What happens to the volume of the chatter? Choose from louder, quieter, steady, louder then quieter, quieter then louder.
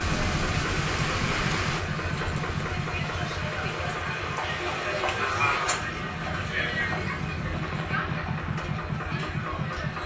louder then quieter.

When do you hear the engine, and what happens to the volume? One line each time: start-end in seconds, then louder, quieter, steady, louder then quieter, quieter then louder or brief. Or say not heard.
0.0-10.0 quieter then louder.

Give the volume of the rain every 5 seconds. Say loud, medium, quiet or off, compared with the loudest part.
loud, medium.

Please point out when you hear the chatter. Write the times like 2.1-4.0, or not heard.
0.0-10.0.